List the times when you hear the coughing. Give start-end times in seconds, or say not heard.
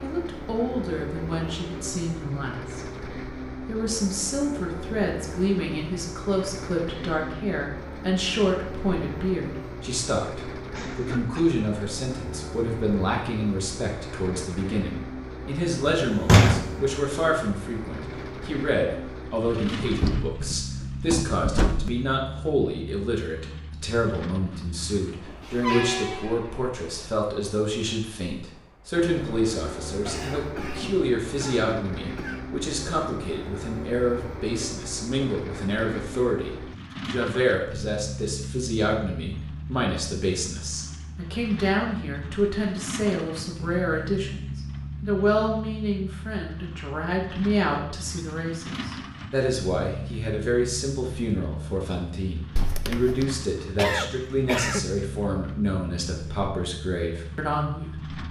10.7-11.6, 30.1-32.5, 53.8-54.9.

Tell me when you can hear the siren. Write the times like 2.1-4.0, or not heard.
not heard.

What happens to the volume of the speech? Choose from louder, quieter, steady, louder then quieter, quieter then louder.
steady.